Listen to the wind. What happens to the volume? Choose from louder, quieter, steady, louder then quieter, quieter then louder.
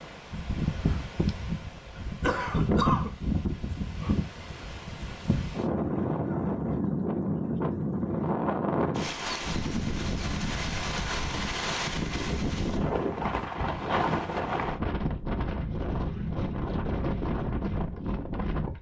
steady.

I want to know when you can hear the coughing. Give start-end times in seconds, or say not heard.
2.2-3.1.